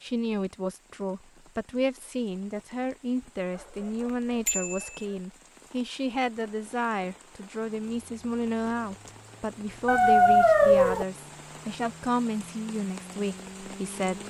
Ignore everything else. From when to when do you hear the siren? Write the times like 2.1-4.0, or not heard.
not heard.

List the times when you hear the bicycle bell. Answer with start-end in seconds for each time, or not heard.
4.5-5.0.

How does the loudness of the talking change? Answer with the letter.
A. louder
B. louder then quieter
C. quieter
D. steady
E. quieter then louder
D.